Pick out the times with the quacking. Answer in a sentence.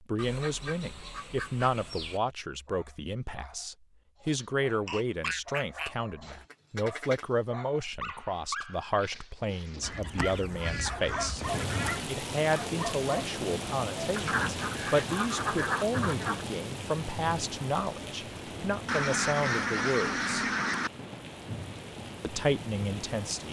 You can hear the quacking from 0.1 to 2.2 s, from 4.8 to 7.2 s, from 9.8 to 12.1 s, from 14.2 to 16.4 s and from 18.9 to 20.9 s.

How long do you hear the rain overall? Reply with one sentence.
You can hear the rain for 12 seconds altogether.